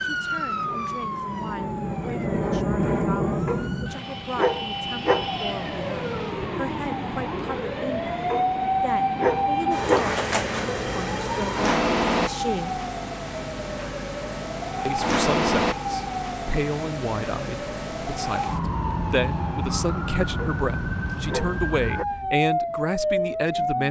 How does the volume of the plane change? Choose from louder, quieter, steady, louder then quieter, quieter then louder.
louder then quieter.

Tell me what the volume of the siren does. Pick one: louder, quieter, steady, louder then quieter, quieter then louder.
louder.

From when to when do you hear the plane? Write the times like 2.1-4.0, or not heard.
0.0-6.3.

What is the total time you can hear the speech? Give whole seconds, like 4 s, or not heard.
22 s.